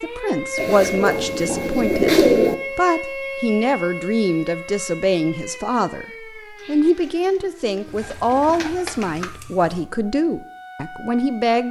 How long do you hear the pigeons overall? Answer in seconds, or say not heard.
4 s.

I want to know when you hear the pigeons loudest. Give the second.
2 s.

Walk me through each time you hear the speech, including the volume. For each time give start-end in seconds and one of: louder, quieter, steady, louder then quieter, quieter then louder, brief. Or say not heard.
0.0-11.6 steady.